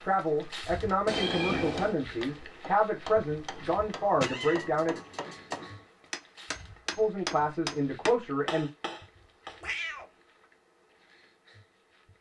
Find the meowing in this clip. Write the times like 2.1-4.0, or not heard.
1.1-2.0, 4.2-5.6, 9.6-10.1.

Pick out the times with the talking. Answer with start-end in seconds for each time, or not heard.
0.0-5.0, 7.0-8.7.